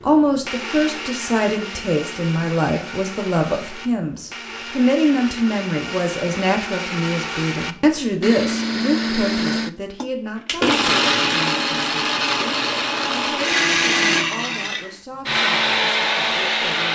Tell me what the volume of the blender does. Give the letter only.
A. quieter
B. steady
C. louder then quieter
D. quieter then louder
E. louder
E.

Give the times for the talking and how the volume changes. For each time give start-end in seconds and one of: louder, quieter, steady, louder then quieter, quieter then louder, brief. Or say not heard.
0.0-16.9 quieter.